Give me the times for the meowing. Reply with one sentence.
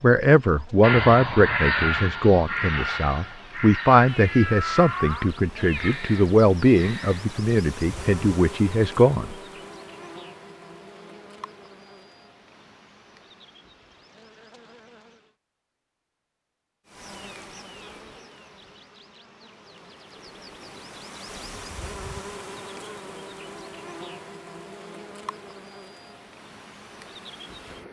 You can hear the meowing from 4.0 to 6.0 s.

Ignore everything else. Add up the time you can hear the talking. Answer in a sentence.
You can hear the talking for 9 seconds altogether.